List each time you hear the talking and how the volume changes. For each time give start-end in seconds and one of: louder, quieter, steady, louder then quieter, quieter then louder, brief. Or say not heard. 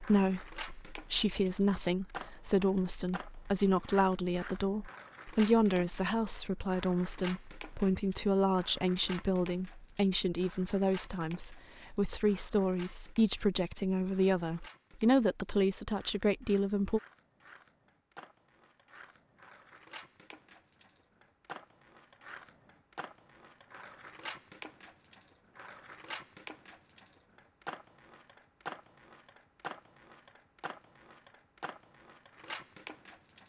0.0-17.0 steady.